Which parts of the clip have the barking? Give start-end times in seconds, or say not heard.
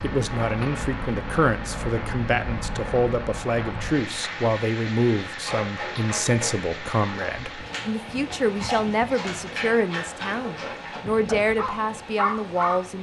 5.4-12.8.